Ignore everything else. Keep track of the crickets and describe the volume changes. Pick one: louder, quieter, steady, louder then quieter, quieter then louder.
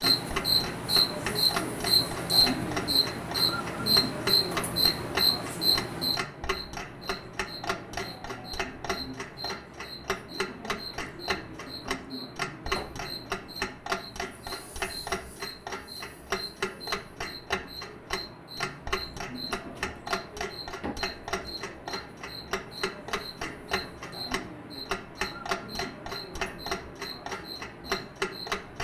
quieter.